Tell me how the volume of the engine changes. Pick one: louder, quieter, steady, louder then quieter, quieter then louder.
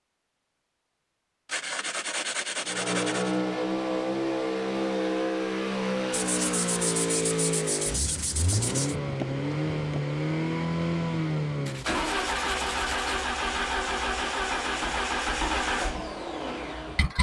steady.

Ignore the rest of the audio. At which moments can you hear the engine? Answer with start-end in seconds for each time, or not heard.
2.6-17.1.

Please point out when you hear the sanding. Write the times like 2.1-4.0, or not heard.
1.4-3.4, 6.1-8.9, 11.7-13.2.